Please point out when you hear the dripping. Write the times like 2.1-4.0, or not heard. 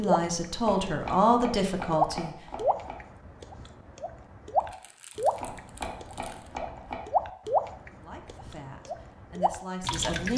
0.0-10.3.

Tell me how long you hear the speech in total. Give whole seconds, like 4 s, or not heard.
5 s.